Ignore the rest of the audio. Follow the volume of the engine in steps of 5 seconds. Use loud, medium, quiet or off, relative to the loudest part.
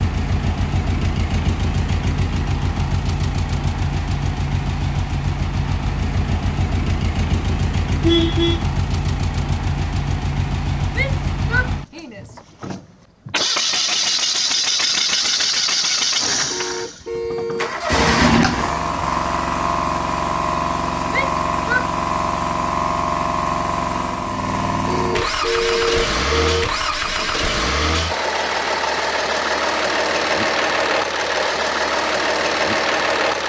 medium, medium, loud, loud, loud, loud, loud.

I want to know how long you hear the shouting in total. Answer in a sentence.
You can hear the shouting for 2 seconds altogether.